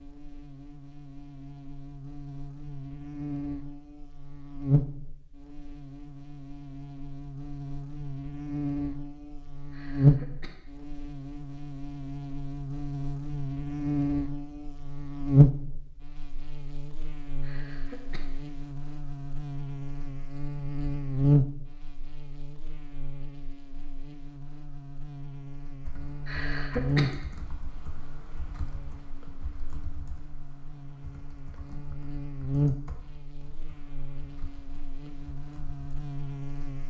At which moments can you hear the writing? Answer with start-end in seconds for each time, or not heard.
not heard.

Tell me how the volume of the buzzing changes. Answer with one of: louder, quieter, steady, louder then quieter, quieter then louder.
louder then quieter.